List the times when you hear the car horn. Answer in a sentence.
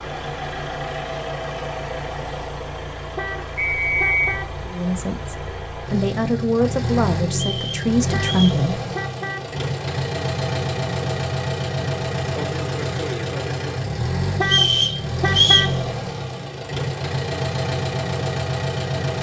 The car horn can be heard from 3.1 to 4.5 s, from 8.1 to 9.6 s and from 14.3 to 15.8 s.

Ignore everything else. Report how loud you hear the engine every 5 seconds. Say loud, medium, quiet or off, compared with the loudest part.
medium, loud, loud, loud.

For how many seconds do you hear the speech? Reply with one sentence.
You can hear the speech for 4 seconds altogether.